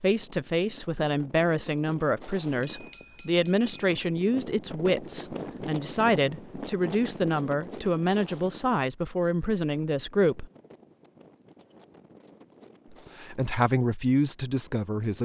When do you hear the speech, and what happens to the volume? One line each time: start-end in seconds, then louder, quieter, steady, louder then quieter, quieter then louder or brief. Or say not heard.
0.0-10.4 steady
12.9-15.2 brief.